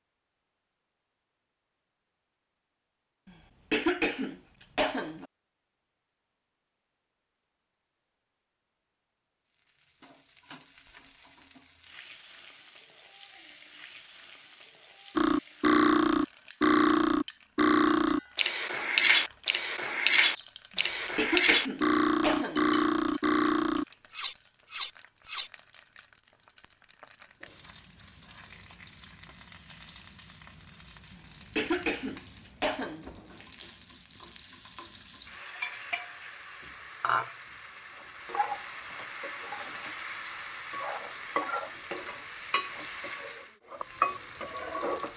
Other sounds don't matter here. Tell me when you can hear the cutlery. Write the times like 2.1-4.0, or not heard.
15.2-25.5.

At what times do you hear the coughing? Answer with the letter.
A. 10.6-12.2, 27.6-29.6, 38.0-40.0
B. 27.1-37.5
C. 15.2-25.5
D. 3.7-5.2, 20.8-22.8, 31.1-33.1
D.